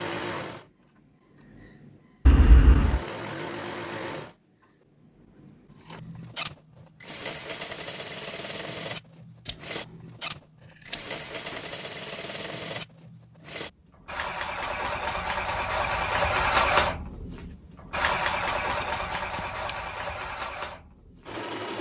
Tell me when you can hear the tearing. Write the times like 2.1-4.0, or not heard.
not heard.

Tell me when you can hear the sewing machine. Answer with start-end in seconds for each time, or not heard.
0.0-21.7.